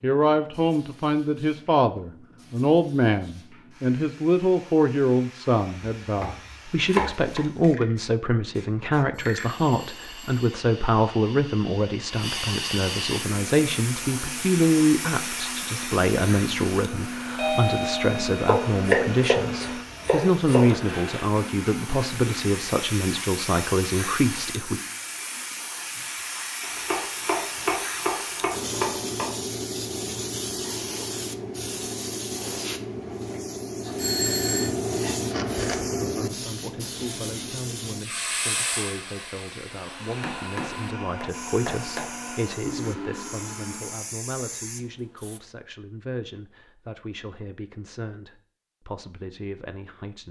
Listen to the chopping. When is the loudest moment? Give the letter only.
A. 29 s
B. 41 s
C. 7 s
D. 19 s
D.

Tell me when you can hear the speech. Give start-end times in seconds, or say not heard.
0.0-24.8, 35.9-50.2.